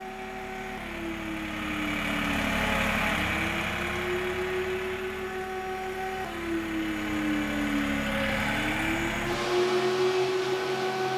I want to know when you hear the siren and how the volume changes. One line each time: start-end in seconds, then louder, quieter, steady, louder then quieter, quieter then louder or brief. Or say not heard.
0.0-11.1 louder.